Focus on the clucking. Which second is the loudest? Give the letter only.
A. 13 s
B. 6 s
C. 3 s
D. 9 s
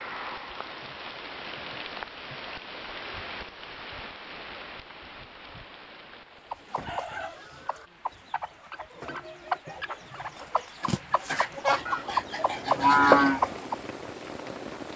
A.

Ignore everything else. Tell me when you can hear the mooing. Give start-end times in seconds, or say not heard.
11.8-13.4.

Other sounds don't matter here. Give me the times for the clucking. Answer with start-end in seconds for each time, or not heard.
6.4-13.8.